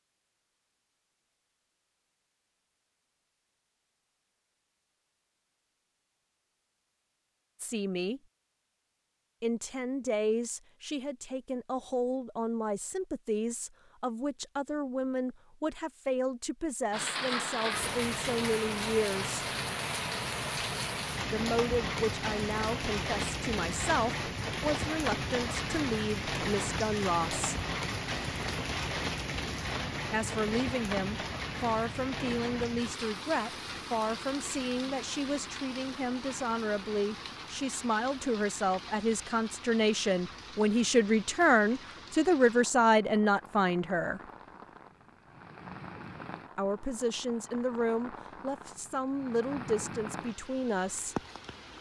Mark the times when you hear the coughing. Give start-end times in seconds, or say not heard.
not heard.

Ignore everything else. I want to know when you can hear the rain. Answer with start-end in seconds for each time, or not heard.
16.9-51.7.